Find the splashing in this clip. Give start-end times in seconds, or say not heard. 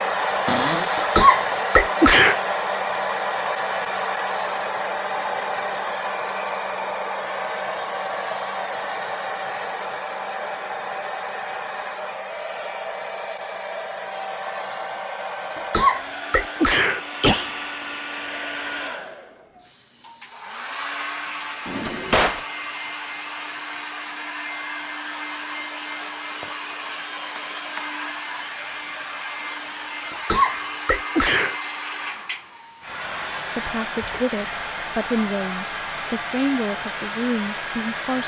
not heard.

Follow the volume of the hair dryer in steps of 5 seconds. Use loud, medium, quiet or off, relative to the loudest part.
loud, loud, medium, medium, medium, medium, medium, medium.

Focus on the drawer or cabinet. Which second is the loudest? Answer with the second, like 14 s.
22 s.